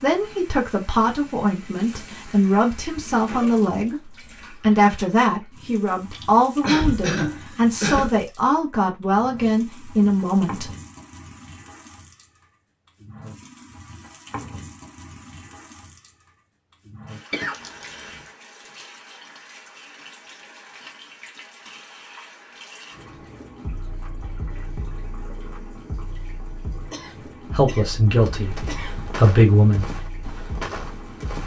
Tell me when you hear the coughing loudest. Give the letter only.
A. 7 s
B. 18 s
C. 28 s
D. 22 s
A.